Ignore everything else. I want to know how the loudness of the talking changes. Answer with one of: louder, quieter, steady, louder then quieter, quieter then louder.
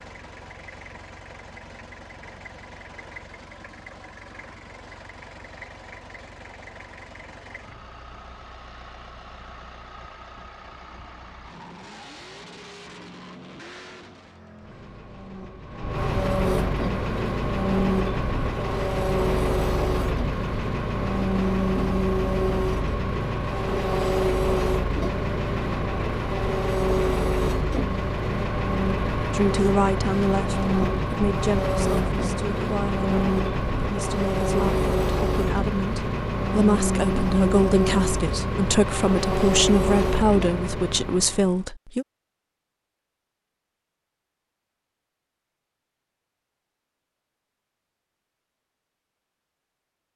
quieter then louder.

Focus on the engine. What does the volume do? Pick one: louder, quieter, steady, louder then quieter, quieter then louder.
louder.